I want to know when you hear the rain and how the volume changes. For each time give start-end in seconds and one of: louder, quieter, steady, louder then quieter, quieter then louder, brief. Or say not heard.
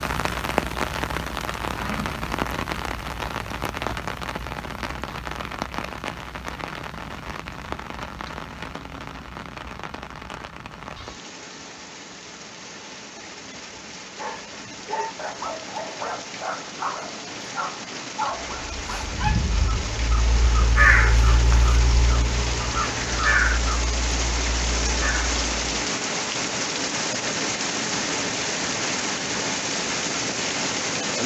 0.0-31.2 quieter then louder.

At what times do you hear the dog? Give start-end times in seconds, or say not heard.
14.2-19.4.